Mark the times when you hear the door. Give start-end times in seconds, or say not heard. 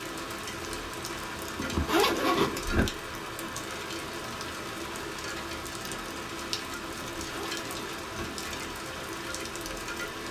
not heard.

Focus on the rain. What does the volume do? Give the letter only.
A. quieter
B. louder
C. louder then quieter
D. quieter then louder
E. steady
E.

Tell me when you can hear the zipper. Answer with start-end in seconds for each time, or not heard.
1.6-2.9, 7.2-8.2.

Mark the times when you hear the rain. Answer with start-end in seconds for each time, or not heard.
0.0-10.2.